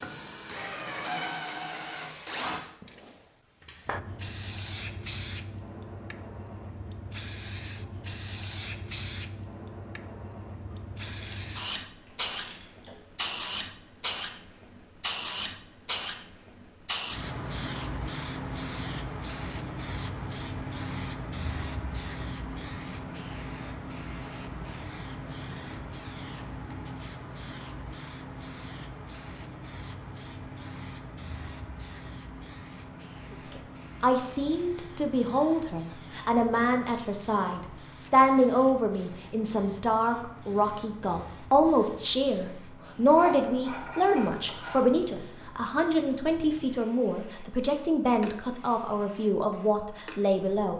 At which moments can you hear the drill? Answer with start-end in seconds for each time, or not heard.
0.0-2.6.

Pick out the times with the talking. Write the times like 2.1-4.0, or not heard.
33.3-50.7.